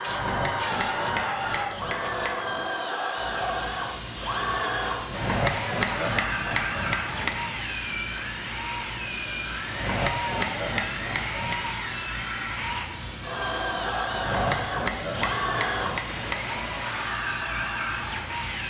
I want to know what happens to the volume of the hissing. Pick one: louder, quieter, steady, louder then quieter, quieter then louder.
steady.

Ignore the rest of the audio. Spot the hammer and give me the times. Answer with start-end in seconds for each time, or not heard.
0.1-2.6, 5.0-7.5, 9.7-11.6, 14.1-16.7.